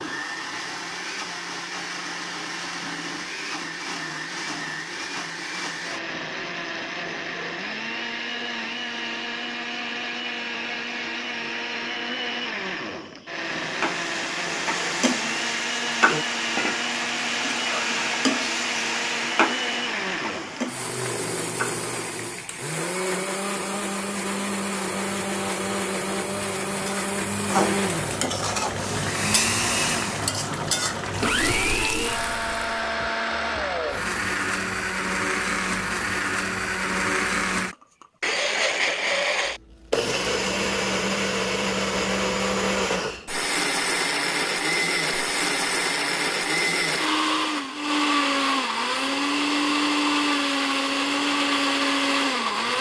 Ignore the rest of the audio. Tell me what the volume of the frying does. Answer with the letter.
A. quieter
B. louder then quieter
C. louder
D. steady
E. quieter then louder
E.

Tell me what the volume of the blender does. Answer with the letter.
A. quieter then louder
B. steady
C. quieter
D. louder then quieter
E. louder
E.